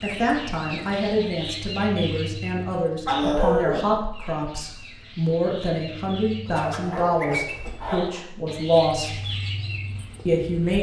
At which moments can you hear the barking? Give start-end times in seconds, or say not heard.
3.0-3.9, 6.5-8.2.